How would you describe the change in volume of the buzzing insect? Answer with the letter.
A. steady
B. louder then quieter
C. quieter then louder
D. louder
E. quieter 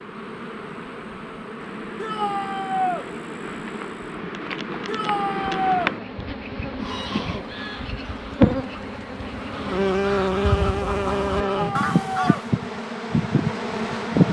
D.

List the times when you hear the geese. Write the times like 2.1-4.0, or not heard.
6.8-12.5.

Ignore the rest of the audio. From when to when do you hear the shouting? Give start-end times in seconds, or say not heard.
2.0-3.0, 4.8-6.0, 11.4-12.4.